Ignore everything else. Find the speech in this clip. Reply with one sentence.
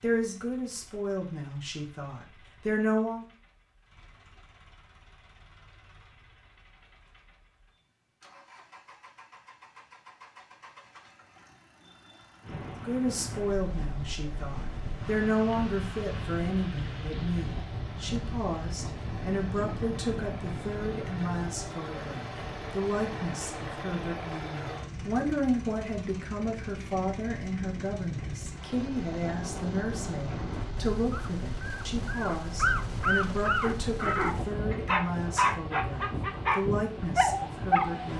The speech can be heard from 0.0 to 3.2 s and from 12.8 to 38.1 s.